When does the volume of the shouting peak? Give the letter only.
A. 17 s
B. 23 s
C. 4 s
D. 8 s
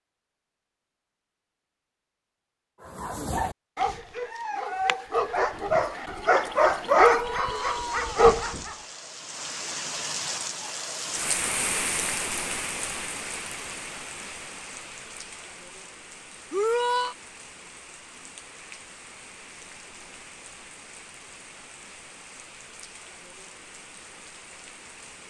A.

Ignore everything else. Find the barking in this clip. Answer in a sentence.
The barking can be heard from 3.0 to 8.8 s.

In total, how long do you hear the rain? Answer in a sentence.
The rain can be heard for 18 seconds in total.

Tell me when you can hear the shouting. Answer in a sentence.
You can hear the shouting from 7.0 to 8.2 s and from 16.5 to 17.1 s.